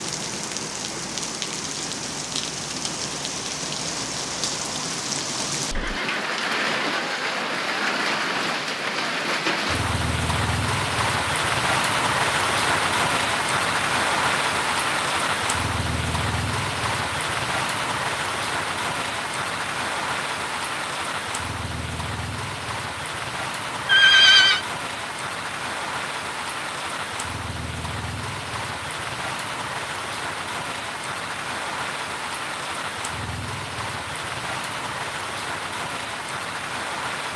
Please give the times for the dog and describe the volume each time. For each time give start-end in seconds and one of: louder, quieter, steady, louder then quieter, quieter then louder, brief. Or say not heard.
not heard.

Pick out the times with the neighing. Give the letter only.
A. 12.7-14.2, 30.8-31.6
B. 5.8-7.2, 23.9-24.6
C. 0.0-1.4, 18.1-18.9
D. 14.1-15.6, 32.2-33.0
B.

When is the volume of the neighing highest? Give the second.
24 s.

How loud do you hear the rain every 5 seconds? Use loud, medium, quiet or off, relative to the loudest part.
medium, loud, loud, loud, medium, medium, medium, medium.